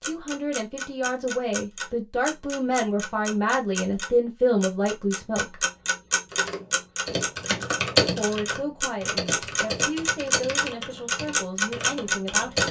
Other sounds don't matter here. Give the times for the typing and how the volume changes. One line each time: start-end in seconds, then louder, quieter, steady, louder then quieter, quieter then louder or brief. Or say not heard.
6.3-12.6 louder then quieter.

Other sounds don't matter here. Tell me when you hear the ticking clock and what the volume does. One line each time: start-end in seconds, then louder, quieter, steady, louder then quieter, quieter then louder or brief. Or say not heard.
0.0-12.6 louder.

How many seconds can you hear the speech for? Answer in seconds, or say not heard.
10 s.